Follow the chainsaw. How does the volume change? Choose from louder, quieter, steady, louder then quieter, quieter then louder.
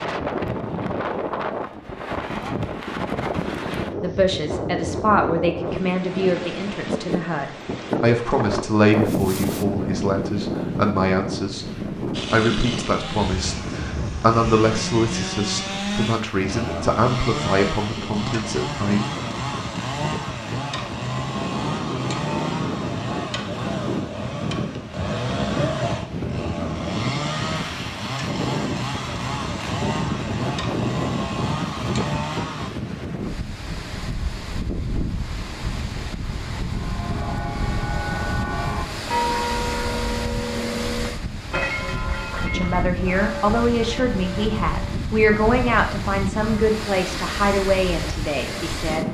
steady.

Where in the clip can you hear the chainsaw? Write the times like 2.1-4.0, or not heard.
12.1-32.7.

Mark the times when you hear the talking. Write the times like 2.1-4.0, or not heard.
4.0-19.0, 42.4-49.0.